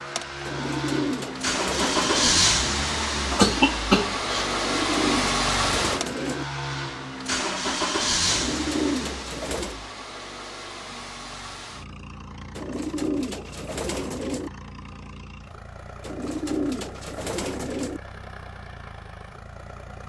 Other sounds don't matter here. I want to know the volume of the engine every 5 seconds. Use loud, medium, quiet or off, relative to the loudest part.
loud, loud, quiet, quiet.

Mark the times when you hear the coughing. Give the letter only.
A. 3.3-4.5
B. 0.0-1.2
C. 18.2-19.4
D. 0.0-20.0
A.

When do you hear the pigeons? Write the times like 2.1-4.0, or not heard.
0.5-2.4, 4.5-6.5, 8.2-9.8, 12.6-14.5, 16.0-18.0.